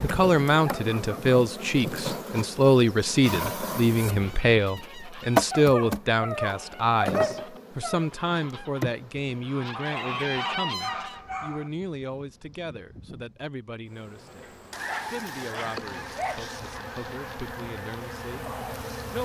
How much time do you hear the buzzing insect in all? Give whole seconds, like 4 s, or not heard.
19 s.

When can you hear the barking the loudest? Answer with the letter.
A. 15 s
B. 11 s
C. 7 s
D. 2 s
C.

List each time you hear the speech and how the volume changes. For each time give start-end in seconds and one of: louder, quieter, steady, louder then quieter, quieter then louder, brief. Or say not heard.
0.0-19.2 quieter.